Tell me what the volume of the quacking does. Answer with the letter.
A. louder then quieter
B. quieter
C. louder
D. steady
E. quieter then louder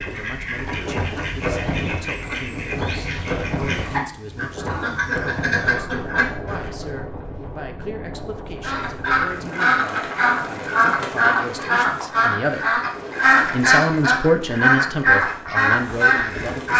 C.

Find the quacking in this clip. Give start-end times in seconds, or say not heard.
0.0-6.8, 8.6-16.7.